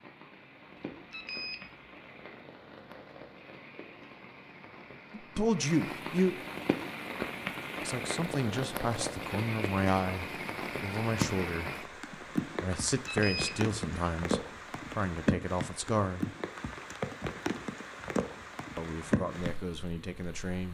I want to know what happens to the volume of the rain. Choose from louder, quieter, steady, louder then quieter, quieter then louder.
louder.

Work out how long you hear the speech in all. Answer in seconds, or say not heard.
11 s.